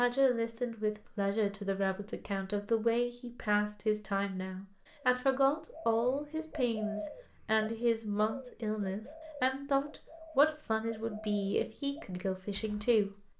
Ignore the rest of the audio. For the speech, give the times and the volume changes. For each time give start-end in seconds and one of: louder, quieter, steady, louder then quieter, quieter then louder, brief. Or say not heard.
0.0-13.2 steady.